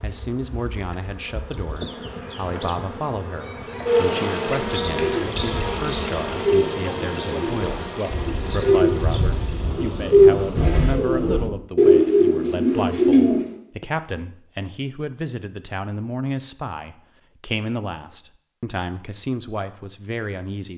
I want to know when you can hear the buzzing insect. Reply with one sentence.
You can hear the buzzing insect from 0.0 to 11.5 s.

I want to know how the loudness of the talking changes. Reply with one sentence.
The loudness of the talking stays about the same.